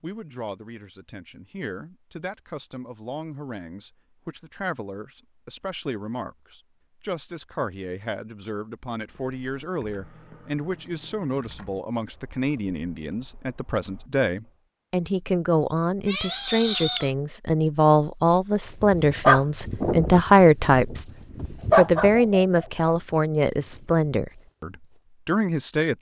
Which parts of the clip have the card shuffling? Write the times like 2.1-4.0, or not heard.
not heard.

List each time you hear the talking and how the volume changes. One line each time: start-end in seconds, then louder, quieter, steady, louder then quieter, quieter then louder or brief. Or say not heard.
0.0-25.9 louder.